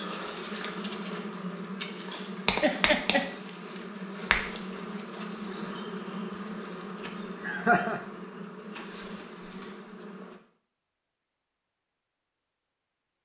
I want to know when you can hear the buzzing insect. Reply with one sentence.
The buzzing insect can be heard from 0.0 to 10.4 s.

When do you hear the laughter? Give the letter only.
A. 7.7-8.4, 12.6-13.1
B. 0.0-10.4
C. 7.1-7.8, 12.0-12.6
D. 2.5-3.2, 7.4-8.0
D.